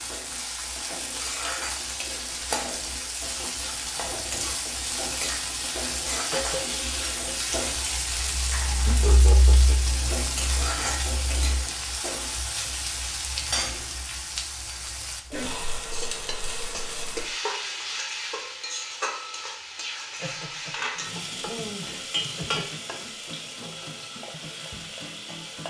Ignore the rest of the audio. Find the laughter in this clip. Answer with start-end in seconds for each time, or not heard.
6.2-6.8, 8.8-9.8, 20.2-22.7.